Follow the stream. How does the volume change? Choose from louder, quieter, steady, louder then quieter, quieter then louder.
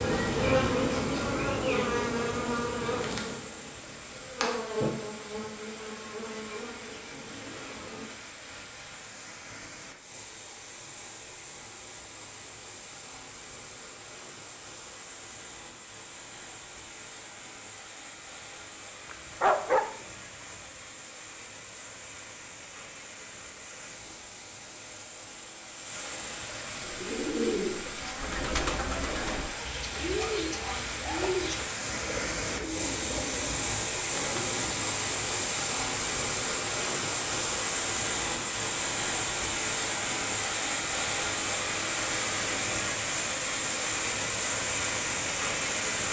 louder.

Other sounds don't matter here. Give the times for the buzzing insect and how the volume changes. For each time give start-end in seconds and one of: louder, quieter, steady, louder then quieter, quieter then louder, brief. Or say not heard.
0.0-8.1 quieter.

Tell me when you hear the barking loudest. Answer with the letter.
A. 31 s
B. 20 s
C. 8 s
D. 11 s
B.